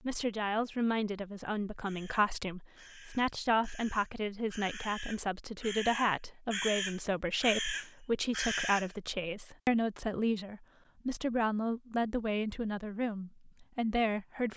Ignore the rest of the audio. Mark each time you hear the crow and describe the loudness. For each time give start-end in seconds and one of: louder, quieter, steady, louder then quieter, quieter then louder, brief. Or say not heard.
1.8-8.9 louder.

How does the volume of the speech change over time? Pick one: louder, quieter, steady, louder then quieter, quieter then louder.
steady.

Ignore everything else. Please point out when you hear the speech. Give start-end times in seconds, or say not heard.
0.1-14.5.